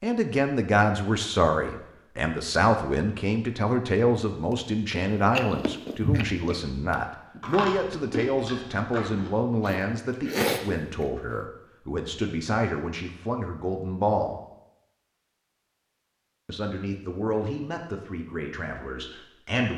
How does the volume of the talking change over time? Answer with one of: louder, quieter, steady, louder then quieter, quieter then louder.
quieter.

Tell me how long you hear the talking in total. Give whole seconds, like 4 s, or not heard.
18 s.